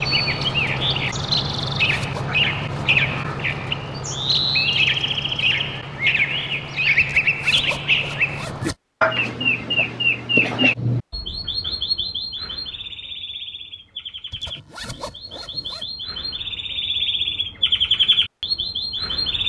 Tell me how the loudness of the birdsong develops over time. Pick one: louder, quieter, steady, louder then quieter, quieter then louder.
quieter then louder.